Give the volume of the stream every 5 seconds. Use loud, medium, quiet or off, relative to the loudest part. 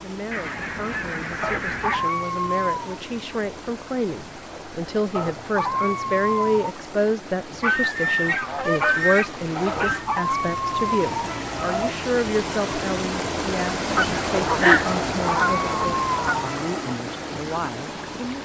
medium, medium, loud, loud.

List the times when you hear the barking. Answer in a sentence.
You can hear the barking from 1.4 to 3.0 s, from 5.2 to 6.8 s, from 9.7 to 11.9 s and from 14.8 to 16.9 s.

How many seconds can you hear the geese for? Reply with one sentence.
The geese can be heard for 7 seconds in total.